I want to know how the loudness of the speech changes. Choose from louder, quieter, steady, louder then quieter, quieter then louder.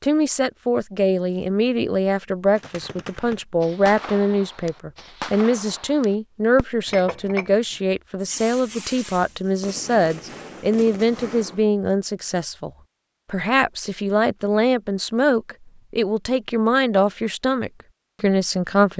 steady.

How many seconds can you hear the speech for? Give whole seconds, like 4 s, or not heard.
18 s.